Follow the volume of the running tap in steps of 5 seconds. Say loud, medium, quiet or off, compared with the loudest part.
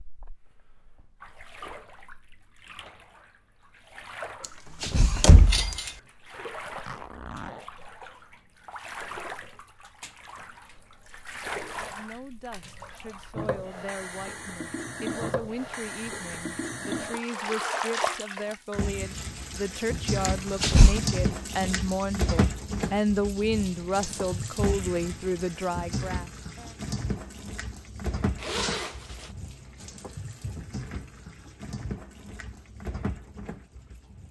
quiet, medium, medium, loud, loud, medium, medium.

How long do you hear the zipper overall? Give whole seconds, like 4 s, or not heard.
2 s.